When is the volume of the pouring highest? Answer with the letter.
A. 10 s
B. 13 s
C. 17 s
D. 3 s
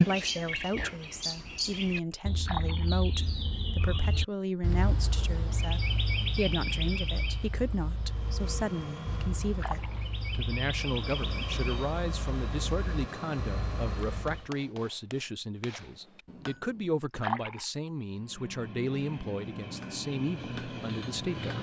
C.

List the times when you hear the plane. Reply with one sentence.
The plane can be heard from 8.0 to 14.6 s and from 18.1 to 21.5 s.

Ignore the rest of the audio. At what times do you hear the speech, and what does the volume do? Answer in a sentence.
The speech can be heard from 0.1 to 21.5 s, at a steady volume.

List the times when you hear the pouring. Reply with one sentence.
You can hear the pouring from 2.2 to 3.1 s, from 9.4 to 10.1 s and from 17.0 to 17.7 s.